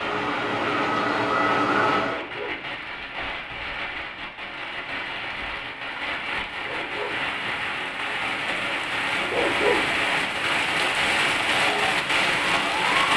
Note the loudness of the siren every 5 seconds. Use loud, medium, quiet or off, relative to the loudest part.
loud, off, medium.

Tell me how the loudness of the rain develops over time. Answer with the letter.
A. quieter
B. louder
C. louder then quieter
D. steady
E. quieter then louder
B.